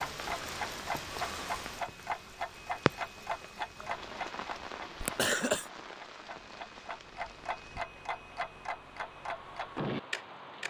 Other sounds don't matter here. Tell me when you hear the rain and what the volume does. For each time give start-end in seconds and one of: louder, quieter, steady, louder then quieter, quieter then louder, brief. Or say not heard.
0.0-10.6 quieter.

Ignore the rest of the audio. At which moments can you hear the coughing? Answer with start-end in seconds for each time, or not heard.
5.0-5.7.